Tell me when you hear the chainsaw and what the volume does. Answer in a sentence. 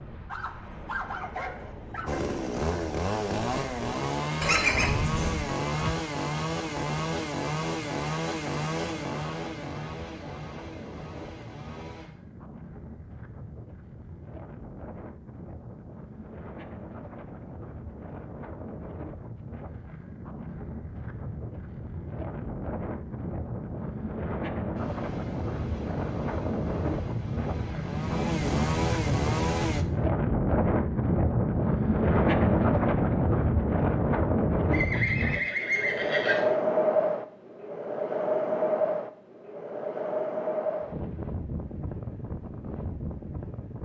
You can hear the chainsaw from 2.0 to 12.1 s, getting quieter; and from 24.8 to 29.9 s, getting louder.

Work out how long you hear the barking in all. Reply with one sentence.
The barking can be heard for 2 seconds in total.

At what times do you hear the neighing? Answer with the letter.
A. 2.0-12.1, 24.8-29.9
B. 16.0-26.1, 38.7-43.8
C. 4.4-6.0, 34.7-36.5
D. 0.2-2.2
C.